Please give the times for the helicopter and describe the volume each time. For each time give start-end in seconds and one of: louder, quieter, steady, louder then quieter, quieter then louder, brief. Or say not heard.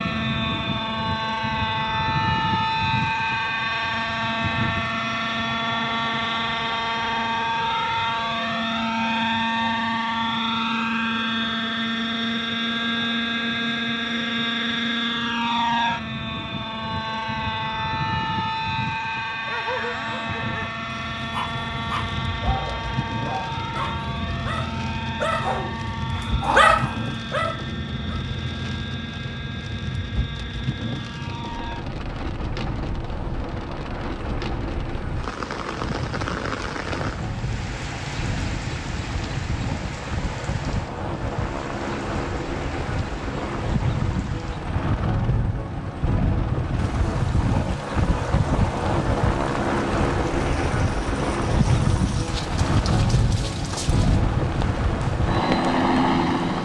0.0-56.5 quieter then louder.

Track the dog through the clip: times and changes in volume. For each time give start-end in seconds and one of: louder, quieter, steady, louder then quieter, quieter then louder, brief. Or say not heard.
19.4-28.2 louder.